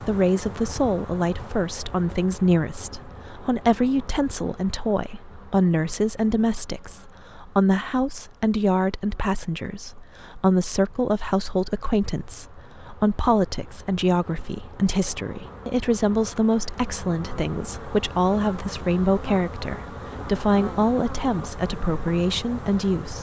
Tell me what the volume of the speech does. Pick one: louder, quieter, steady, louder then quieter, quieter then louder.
steady.